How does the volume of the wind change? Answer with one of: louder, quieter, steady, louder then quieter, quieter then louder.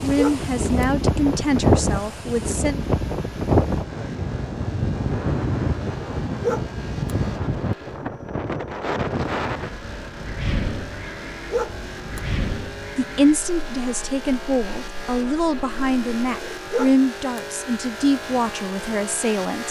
quieter.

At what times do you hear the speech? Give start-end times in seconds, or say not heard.
0.0-2.8, 12.9-19.6.